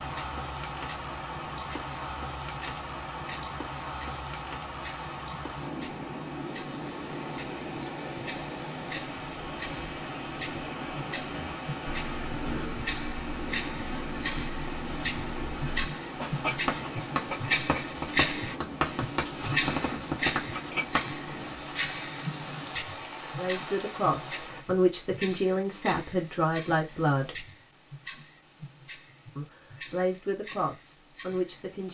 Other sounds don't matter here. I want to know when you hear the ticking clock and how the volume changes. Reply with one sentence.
The ticking clock can be heard from 0.0 to 31.8 s, getting louder then quieter.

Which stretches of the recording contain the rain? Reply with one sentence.
You can hear the rain from 0.0 to 24.6 s.